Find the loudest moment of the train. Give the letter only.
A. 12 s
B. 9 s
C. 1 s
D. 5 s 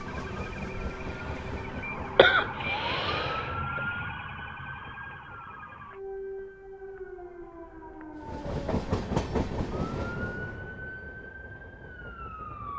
B.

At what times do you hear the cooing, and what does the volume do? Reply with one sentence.
You can't hear the cooing here.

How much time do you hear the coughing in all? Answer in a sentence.
You can hear the coughing for 2 seconds altogether.